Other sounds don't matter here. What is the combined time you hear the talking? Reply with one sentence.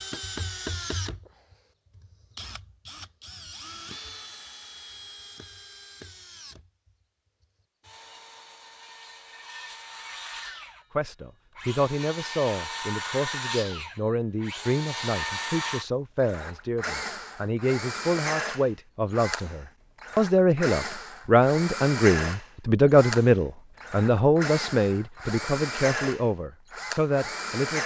The talking can be heard for 17 seconds in total.